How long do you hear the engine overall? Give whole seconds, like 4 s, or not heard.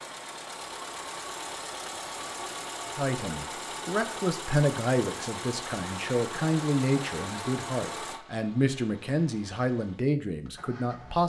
11 s.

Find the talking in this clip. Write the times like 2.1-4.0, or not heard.
3.0-11.2.